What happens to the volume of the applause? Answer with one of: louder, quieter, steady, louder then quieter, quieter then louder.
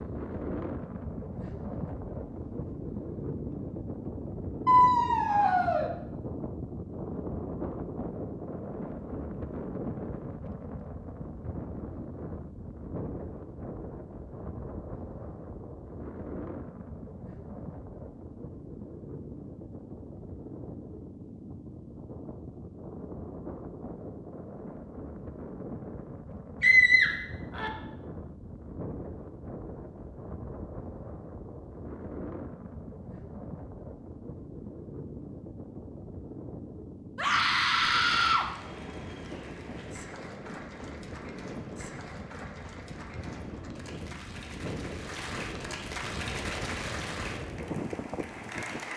louder.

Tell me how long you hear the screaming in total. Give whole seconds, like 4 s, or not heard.
4 s.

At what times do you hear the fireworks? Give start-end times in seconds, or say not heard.
not heard.